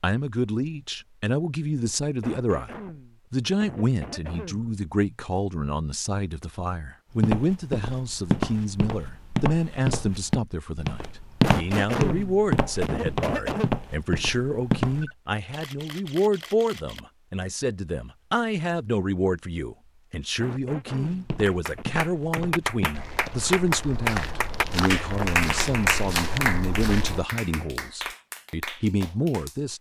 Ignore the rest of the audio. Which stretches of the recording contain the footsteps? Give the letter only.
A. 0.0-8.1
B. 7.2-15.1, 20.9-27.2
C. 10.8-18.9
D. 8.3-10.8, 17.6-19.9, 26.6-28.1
B.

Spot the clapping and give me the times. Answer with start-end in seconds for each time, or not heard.
21.4-29.6.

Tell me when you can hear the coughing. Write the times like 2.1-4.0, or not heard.
2.2-4.7, 11.4-13.7, 20.4-22.0.